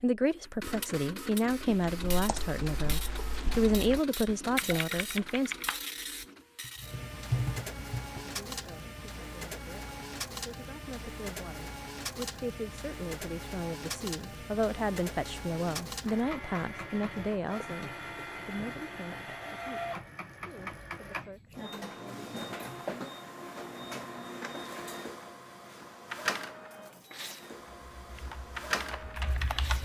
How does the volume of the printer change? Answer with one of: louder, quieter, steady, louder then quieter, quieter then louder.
steady.